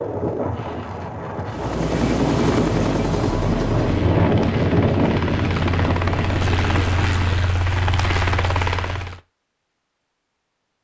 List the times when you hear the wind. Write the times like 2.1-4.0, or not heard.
0.0-7.6.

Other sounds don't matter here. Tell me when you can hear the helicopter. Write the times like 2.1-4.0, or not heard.
1.4-9.2.